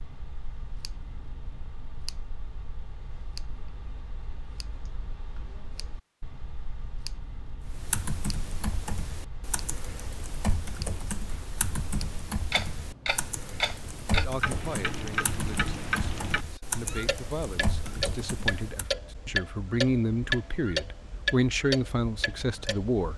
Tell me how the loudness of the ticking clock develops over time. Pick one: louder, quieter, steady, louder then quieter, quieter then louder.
louder.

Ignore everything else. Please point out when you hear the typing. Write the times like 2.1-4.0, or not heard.
7.6-18.9.